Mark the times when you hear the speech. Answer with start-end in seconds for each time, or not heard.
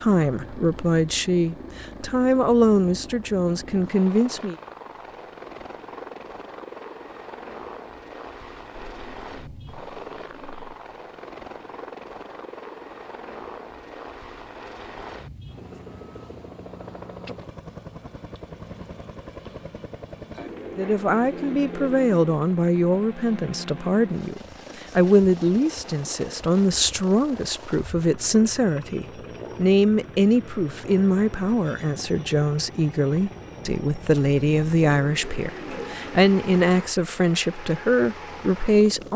0.0-4.5, 20.8-39.1.